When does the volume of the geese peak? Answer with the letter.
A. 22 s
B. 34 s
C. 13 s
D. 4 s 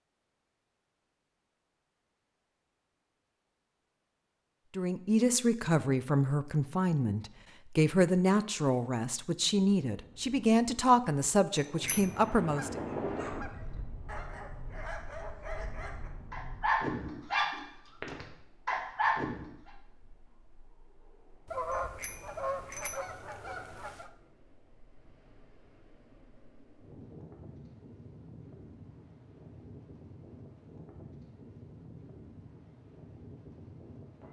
A.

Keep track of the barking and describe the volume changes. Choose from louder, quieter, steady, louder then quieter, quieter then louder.
louder.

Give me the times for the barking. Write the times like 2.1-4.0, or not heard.
12.8-19.7.